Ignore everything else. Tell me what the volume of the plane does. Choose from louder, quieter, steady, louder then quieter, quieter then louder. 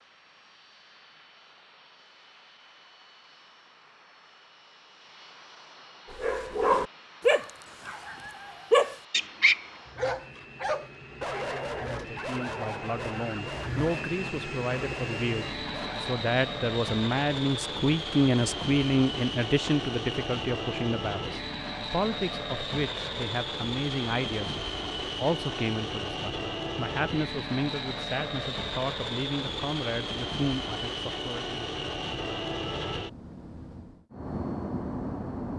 louder.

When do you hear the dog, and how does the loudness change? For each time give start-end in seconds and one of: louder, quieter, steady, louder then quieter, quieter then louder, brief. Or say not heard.
6.1-16.1 quieter.